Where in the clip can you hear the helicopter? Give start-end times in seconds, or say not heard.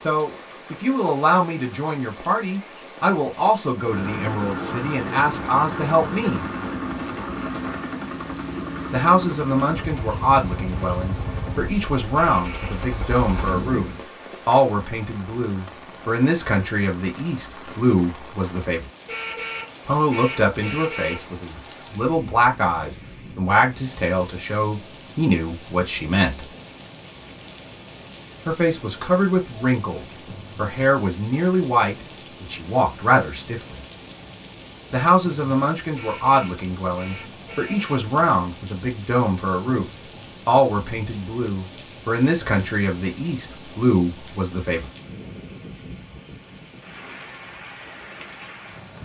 3.8-14.1.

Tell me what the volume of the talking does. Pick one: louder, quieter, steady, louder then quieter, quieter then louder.
steady.